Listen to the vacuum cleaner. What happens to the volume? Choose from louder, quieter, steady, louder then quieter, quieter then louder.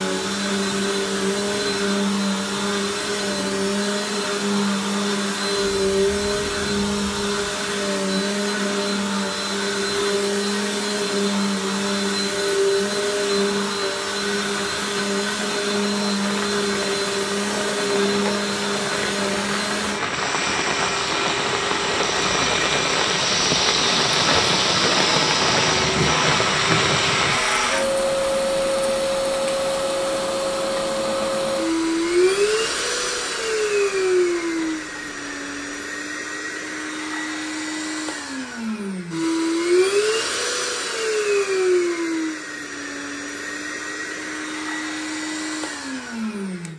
steady.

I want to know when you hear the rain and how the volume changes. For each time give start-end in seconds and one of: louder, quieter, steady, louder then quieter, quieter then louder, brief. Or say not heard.
0.0-35.9 louder then quieter.